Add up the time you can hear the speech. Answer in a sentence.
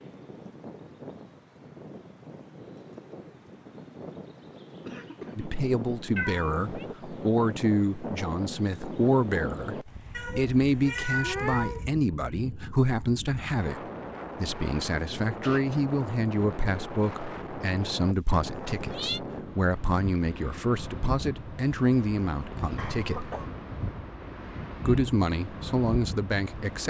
The speech can be heard for 20 seconds in total.